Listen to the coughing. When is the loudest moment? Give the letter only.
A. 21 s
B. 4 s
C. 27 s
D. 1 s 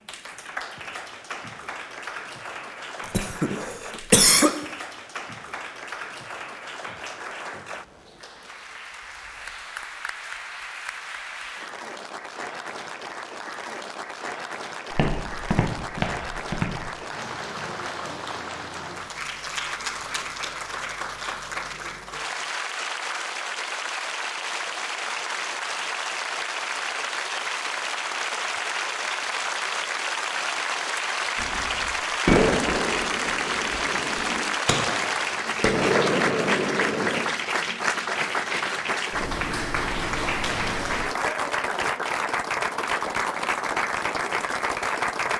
B.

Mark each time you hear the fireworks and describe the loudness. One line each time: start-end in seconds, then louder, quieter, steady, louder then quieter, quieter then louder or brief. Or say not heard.
31.4-37.2 quieter then louder.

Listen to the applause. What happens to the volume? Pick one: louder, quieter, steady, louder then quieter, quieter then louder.
louder.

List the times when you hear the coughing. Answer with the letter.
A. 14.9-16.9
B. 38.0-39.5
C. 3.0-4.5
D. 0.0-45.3
C.